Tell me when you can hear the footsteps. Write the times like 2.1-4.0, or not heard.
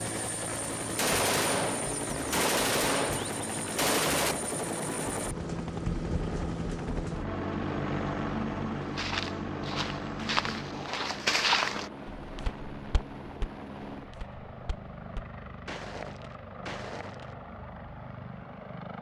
8.8-17.4.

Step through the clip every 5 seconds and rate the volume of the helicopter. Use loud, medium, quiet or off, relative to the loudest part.
loud, loud, medium, medium.